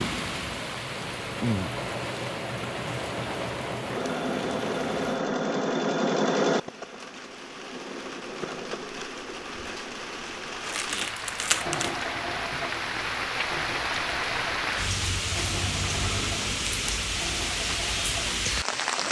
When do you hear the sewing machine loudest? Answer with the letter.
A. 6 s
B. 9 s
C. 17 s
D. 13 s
A.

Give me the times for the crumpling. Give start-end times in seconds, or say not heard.
10.6-12.1.